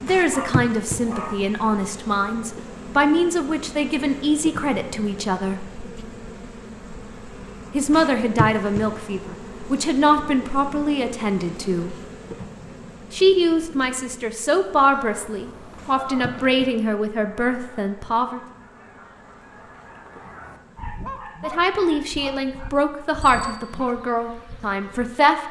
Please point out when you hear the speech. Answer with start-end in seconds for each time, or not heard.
0.0-5.7, 7.7-11.9, 13.1-18.4, 21.4-25.4.